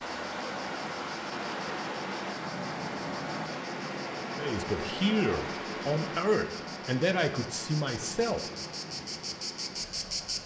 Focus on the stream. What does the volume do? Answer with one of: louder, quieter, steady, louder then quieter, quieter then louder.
quieter.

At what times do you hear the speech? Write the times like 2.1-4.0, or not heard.
4.3-8.4.